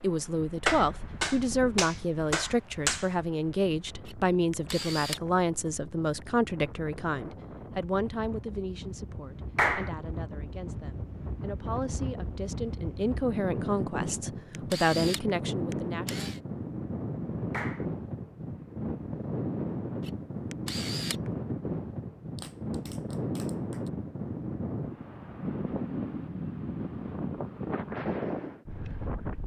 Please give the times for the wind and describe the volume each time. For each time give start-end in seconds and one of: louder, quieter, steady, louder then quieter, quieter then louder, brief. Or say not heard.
0.0-29.4 louder.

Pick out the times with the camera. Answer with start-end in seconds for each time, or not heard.
4.0-5.2, 14.1-16.4, 20.0-21.3.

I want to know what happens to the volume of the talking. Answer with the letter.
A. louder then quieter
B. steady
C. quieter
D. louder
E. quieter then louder
E.